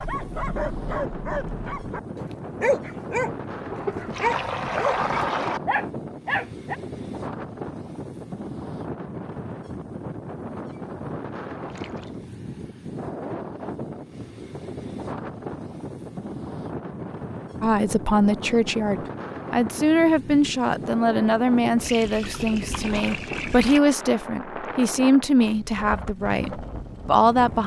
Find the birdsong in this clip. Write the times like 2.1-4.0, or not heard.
not heard.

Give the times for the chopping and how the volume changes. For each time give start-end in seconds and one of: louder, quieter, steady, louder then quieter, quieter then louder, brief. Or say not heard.
not heard.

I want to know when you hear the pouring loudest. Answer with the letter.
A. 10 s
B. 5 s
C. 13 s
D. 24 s
B.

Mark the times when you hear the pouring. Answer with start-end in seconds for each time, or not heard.
3.7-5.6, 11.7-12.3, 21.8-23.8.